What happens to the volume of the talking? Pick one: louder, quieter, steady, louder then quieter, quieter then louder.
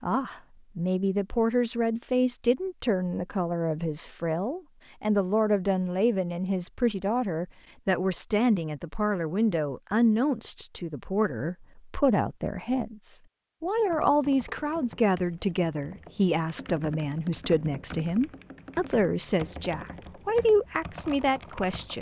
steady.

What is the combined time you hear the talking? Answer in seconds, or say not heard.
22 s.